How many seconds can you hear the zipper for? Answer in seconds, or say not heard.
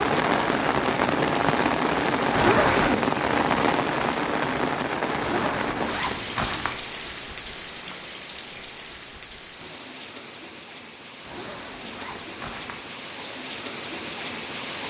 4 s.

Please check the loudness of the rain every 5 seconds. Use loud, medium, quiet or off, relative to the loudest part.
loud, medium, quiet.